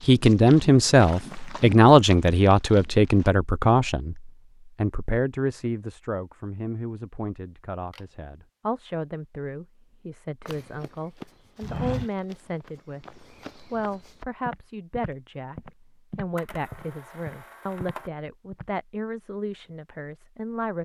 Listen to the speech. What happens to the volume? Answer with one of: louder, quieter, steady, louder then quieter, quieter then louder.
quieter.